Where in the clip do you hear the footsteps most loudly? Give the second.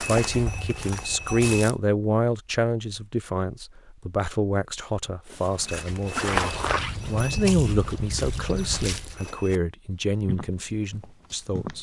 6 s.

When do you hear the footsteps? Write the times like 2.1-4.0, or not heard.
0.0-1.8, 5.3-9.6, 10.2-11.7.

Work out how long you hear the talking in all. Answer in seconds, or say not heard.
12 s.